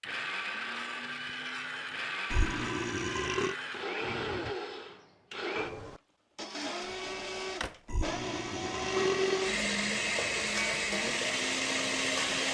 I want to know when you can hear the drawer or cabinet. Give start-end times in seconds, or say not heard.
3.9-4.5, 6.8-7.8.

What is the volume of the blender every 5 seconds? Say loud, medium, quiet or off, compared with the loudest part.
medium, loud, loud.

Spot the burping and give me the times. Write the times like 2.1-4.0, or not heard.
2.3-3.5, 7.8-9.5.